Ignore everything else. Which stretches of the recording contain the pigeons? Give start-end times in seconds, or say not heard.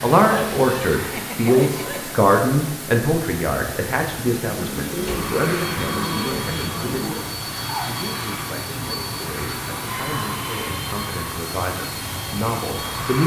4.2-7.2.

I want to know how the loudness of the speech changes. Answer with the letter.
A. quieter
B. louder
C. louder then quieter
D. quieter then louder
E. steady
D.